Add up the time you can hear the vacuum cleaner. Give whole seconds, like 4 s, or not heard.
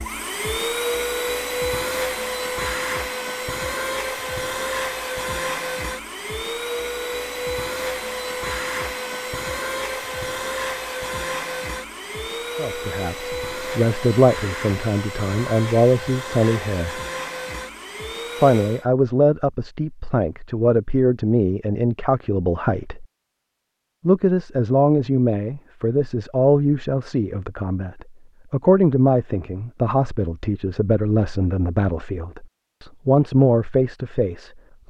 19 s.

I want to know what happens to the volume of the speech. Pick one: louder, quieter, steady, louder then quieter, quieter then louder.
steady.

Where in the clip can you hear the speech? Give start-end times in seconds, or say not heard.
12.6-17.0, 18.4-23.1, 24.1-34.5.